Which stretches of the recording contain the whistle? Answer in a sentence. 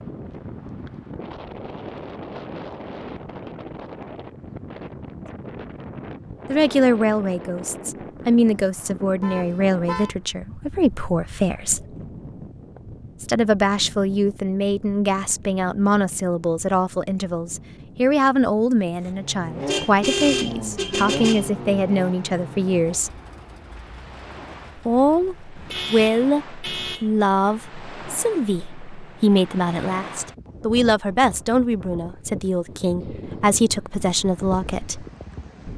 The whistle can't be heard in this clip.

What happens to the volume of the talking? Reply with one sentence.
The loudness of the talking stays about the same.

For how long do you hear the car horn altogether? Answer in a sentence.
The car horn can be heard for 4 seconds in total.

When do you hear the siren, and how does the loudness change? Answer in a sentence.
The siren can't be heard in this clip.